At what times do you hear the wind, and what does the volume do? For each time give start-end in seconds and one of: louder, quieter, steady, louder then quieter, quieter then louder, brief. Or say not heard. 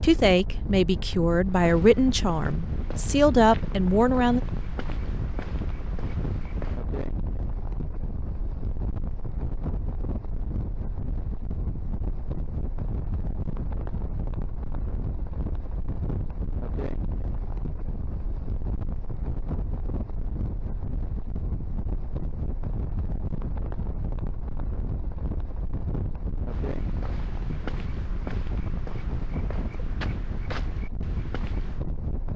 0.0-32.3 steady.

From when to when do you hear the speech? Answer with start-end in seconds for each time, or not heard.
0.0-4.4.